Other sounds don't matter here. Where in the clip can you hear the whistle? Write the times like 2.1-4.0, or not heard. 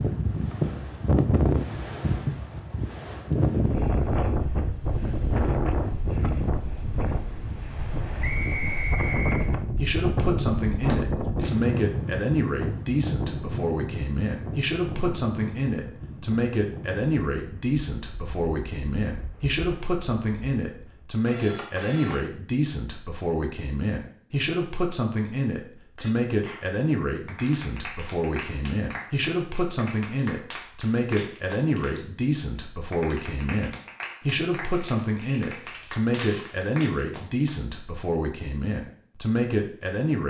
8.2-9.5.